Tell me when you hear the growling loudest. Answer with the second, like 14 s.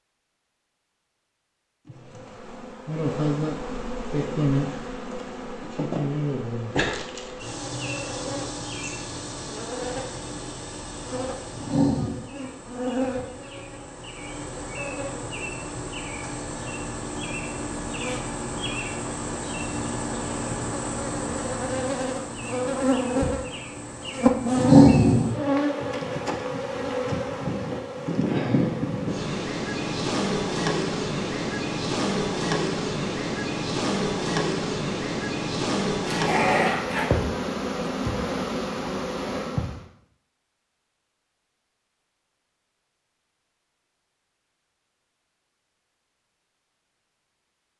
25 s.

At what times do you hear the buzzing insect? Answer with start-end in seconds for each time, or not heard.
1.9-39.8.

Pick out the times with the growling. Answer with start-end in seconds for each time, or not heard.
11.6-12.2, 24.6-25.3, 36.0-37.1.